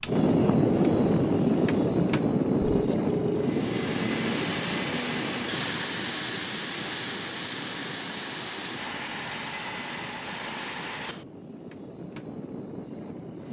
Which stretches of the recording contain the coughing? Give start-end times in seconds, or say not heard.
not heard.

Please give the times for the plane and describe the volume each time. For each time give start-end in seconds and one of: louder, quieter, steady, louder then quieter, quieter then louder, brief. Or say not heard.
0.0-13.4 quieter.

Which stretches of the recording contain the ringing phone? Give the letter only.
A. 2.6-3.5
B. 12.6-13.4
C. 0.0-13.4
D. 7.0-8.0
A.